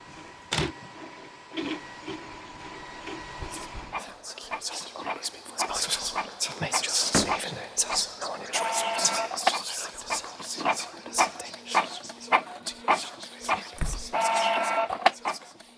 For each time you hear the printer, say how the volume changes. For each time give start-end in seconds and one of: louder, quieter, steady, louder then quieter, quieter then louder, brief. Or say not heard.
0.0-15.7 louder.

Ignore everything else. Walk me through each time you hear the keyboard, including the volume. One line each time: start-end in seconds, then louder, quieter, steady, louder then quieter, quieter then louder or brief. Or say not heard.
not heard.